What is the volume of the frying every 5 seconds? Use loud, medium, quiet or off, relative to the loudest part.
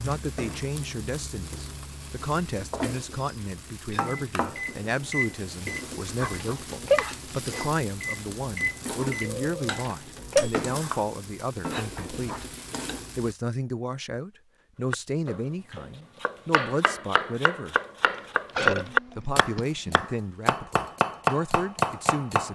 loud, loud, loud, off, off.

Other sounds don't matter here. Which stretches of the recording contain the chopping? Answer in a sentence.
You can hear the chopping from 14.9 to 22.5 s.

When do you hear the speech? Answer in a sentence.
The speech can be heard from 0.0 to 12.4 s, from 13.2 to 17.8 s and from 18.6 to 22.5 s.